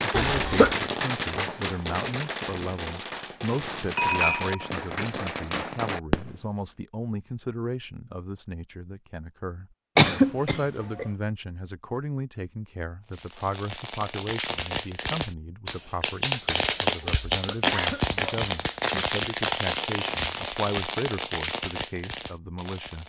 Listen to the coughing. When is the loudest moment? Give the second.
10 s.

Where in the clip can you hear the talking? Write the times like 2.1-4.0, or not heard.
0.0-23.0.